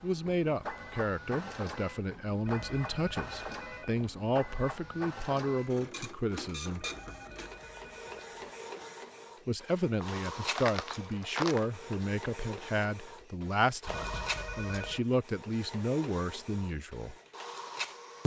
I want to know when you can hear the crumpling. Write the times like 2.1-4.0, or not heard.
10.0-11.7.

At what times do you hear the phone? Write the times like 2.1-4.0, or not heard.
2.5-4.0, 6.8-8.4, 13.8-15.1.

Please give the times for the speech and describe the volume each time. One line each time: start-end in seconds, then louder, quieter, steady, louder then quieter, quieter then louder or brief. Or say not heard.
0.0-6.8 steady
9.4-17.1 steady.